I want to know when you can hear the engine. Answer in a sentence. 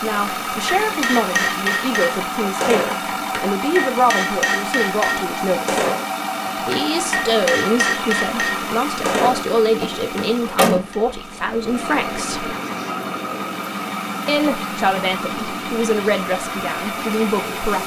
You can hear the engine from 0.0 to 17.8 s.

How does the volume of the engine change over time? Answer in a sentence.
The loudness of the engine stays about the same.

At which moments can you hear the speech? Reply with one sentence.
The speech can be heard from 0.0 to 5.8 s, from 6.7 to 12.5 s and from 14.2 to 17.8 s.